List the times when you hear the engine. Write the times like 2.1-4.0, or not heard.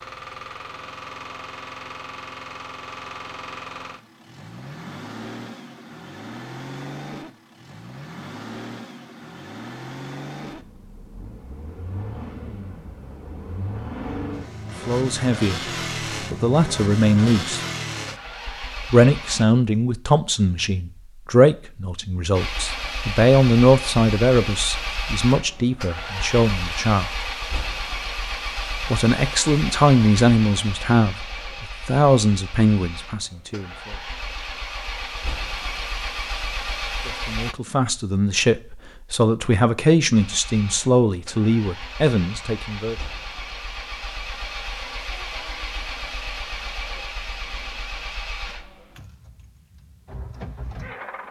0.0-19.4, 22.3-37.5, 40.1-51.2.